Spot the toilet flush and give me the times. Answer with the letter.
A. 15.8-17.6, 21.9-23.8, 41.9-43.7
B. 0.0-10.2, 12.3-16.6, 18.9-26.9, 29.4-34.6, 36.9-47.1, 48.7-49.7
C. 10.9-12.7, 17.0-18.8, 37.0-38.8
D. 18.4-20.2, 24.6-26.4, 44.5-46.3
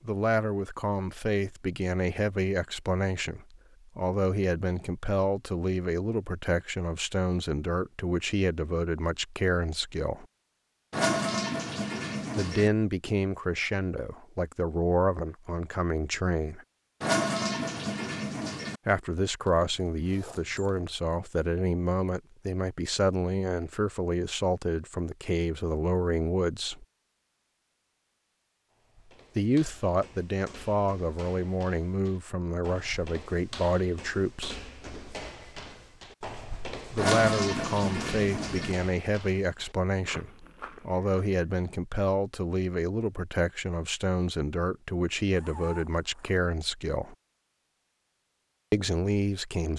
C.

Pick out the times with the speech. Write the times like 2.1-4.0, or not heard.
0.0-10.2, 12.3-16.6, 18.9-26.9, 29.4-34.6, 36.9-47.1, 48.7-49.7.